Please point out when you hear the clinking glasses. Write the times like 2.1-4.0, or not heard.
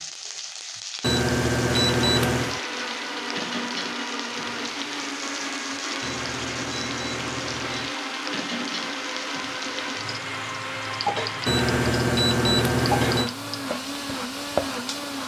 not heard.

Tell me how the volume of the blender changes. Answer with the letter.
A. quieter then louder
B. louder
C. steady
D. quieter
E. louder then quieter
C.